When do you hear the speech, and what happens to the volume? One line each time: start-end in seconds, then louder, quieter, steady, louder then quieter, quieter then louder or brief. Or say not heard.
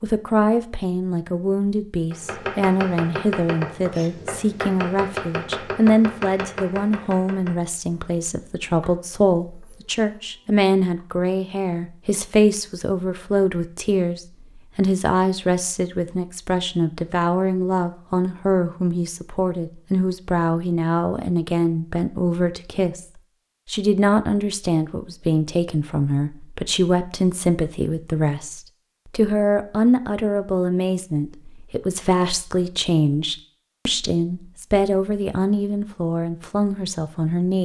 0.0-37.6 steady.